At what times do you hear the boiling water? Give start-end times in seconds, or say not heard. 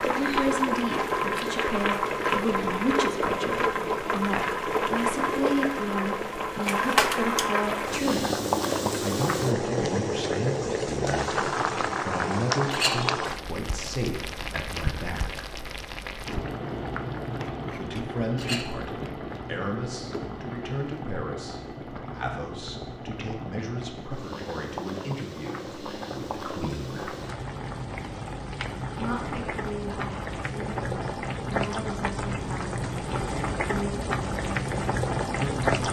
0.0-35.8.